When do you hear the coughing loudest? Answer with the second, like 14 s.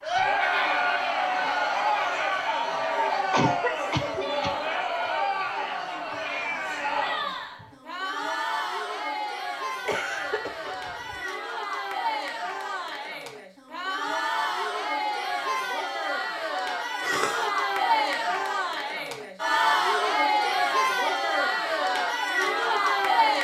4 s.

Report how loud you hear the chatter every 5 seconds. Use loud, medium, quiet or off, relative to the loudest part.
loud, medium, medium, loud, loud.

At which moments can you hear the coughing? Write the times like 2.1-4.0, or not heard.
3.3-4.5, 9.8-11.2, 17.0-17.5.